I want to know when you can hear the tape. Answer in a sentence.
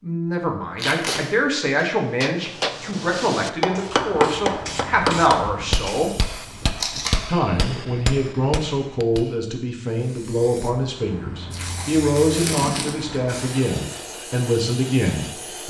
You can hear the tape from 0.8 to 1.2 s, from 6.8 to 7.2 s and from 11.5 to 13.1 s.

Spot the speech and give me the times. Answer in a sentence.
The speech can be heard from 0.0 to 6.1 s and from 7.2 to 15.6 s.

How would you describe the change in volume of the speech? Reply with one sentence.
The loudness of the speech stays about the same.